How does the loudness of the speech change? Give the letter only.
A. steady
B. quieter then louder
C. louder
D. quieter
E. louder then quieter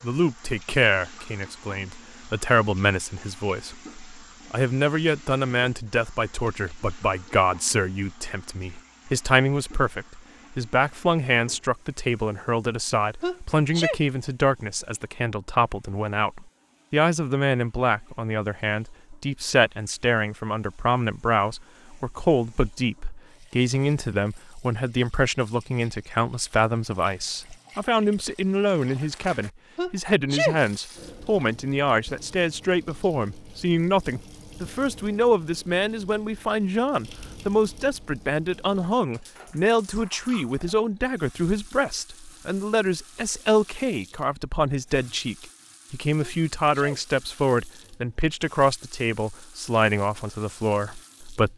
A.